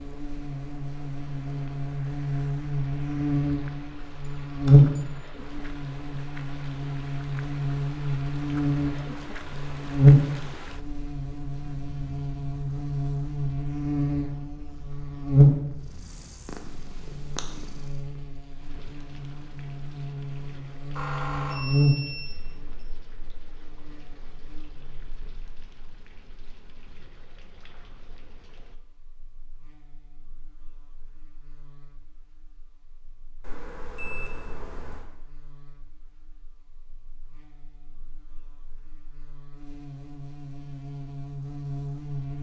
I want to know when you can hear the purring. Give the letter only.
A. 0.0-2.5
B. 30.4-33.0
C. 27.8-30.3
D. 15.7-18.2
D.